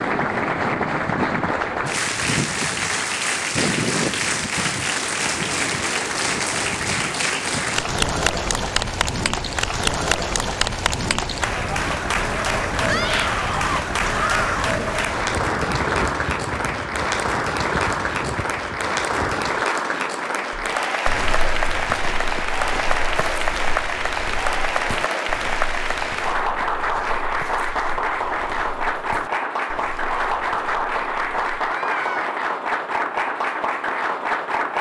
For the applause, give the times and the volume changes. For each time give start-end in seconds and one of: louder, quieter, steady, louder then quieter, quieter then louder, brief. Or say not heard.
0.0-34.7 steady.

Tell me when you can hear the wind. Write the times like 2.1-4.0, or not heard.
0.0-19.6.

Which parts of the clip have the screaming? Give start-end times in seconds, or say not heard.
12.8-14.8, 31.6-32.4.